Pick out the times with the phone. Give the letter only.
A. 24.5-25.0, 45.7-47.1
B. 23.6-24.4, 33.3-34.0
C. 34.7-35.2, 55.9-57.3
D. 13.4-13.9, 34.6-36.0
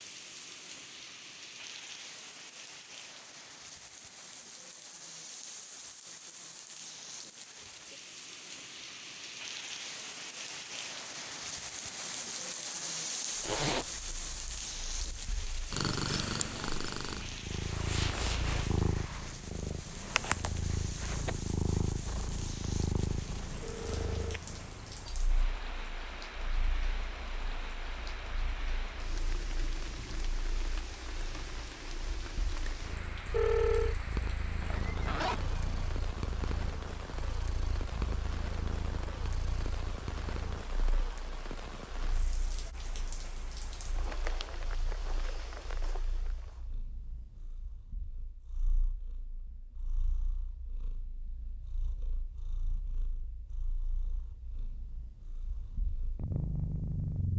B.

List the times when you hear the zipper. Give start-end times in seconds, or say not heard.
13.4-13.9, 34.6-36.0.